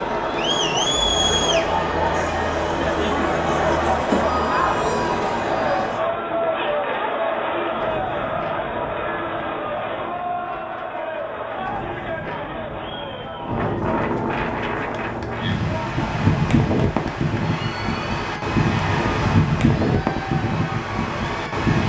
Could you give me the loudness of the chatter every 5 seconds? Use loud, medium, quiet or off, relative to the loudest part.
loud, loud, medium, quiet, quiet.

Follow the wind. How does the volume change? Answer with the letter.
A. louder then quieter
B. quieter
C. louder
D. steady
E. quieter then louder
C.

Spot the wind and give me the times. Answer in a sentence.
The wind can be heard from 4.8 to 21.8 s.